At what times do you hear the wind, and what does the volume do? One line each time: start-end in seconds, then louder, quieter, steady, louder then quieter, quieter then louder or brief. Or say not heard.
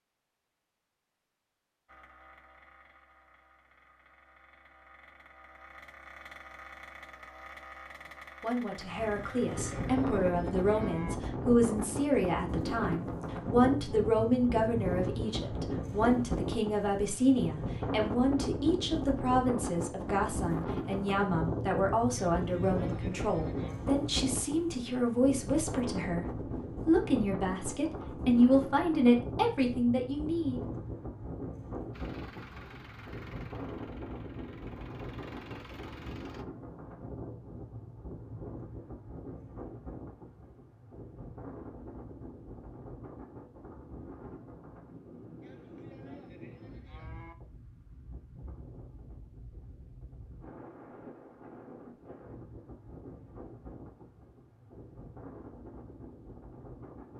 8.8-57.1 quieter.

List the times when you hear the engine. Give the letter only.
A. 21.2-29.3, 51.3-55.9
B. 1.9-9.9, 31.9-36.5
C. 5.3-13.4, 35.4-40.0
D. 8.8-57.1
B.